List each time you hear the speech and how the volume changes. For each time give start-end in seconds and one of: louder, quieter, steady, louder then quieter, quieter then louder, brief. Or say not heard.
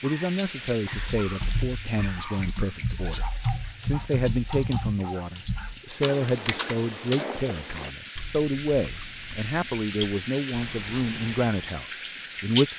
0.0-12.7 steady.